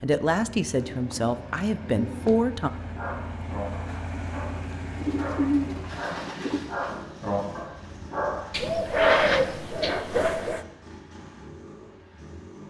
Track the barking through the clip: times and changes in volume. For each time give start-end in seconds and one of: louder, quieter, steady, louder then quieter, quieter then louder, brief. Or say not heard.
2.8-9.3 louder.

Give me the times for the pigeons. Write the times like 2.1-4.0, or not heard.
0.8-2.4, 5.0-6.6, 8.5-10.7.